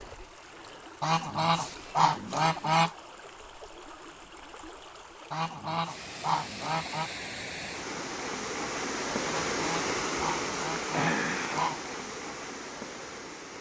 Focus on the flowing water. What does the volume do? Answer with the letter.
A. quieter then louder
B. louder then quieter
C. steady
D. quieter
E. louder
E.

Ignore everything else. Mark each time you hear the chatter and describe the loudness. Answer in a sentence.
The chatter can't be heard in this clip.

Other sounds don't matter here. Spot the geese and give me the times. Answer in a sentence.
You can hear the geese from 1.0 to 3.0 s, from 5.3 to 7.1 s and from 9.2 to 11.8 s.